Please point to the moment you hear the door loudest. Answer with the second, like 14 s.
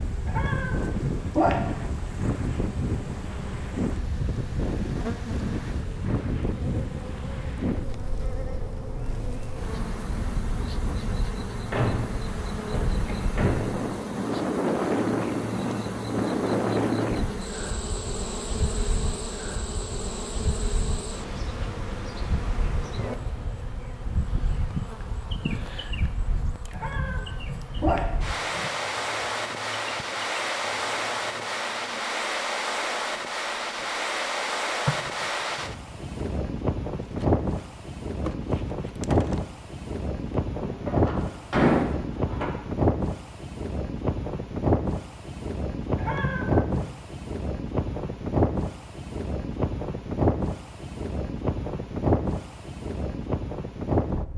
42 s.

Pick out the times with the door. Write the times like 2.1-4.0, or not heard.
11.7-13.8, 40.6-42.5.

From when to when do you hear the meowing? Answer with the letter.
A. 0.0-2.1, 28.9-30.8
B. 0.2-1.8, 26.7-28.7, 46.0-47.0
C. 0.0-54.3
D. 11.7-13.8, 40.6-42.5
B.